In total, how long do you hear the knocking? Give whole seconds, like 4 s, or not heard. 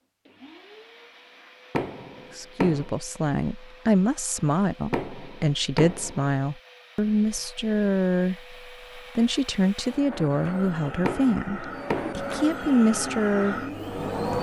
4 s.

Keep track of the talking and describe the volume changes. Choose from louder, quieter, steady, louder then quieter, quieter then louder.
steady.